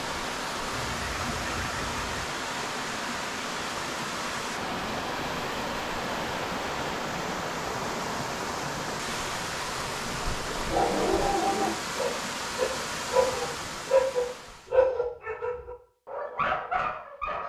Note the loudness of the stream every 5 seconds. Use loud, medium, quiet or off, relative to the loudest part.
loud, loud, loud, off.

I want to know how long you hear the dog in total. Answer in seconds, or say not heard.
7 s.